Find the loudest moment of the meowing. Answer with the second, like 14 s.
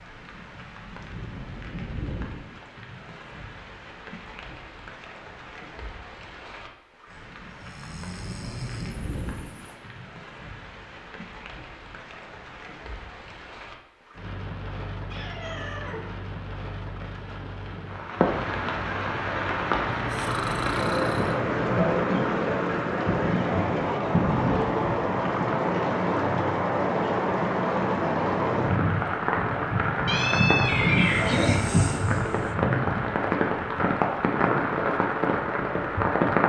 31 s.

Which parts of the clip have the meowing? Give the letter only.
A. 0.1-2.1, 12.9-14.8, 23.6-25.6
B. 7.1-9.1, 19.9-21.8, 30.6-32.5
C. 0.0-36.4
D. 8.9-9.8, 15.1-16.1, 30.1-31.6
D.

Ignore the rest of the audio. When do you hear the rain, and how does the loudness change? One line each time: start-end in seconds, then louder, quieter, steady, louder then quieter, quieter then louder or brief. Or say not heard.
0.0-36.4 louder.